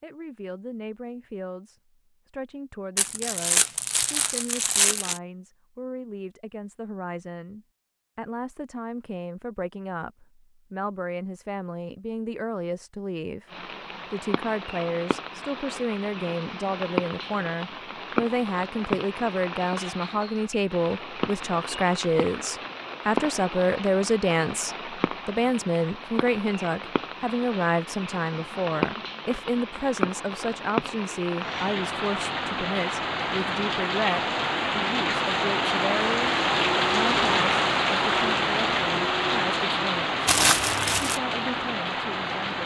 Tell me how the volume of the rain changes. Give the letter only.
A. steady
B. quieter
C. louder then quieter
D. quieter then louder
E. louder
E.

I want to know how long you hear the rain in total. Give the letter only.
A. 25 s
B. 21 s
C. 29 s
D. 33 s
C.